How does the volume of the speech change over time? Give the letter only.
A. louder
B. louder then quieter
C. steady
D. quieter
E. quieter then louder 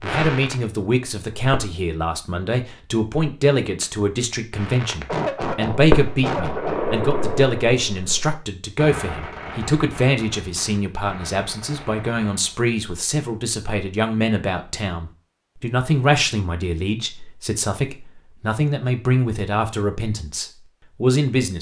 C.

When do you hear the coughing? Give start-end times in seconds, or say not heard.
5.0-6.8.